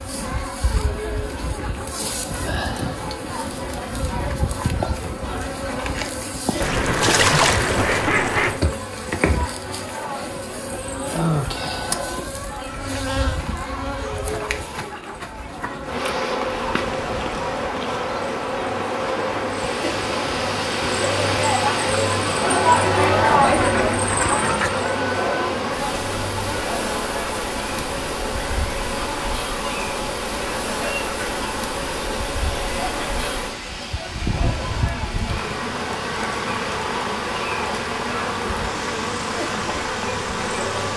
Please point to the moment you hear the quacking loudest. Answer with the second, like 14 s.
7 s.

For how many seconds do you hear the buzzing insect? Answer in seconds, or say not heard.
41 s.